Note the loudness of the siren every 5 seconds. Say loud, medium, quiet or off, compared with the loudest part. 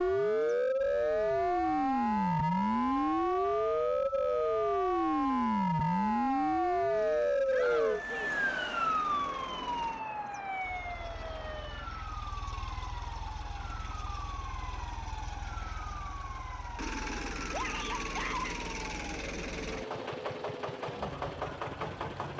loud, loud, quiet, quiet, quiet.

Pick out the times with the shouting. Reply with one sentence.
You can hear the shouting from 7.5 to 8.4 s and from 17.5 to 18.6 s.